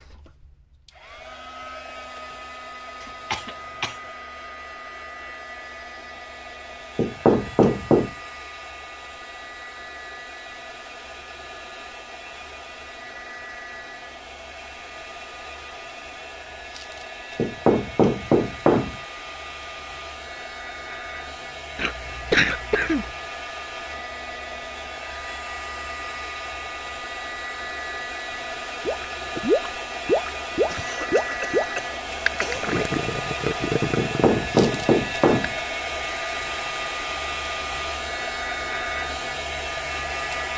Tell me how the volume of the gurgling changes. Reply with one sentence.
The volume of the gurgling goes down.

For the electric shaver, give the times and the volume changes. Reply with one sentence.
You can't hear the electric shaver here.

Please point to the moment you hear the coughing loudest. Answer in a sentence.
The loudest moment of the coughing is at 22 seconds.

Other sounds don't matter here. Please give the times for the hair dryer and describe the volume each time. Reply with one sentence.
You can hear the hair dryer from 0.0 to 40.5 s, getting louder.